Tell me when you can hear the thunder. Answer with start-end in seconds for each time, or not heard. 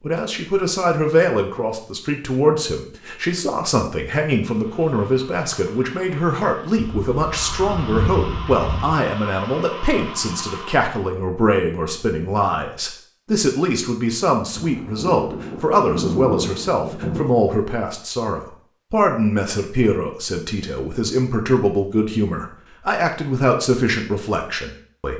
6.8-9.0, 14.6-17.3.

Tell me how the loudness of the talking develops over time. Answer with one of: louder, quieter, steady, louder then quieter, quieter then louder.
steady.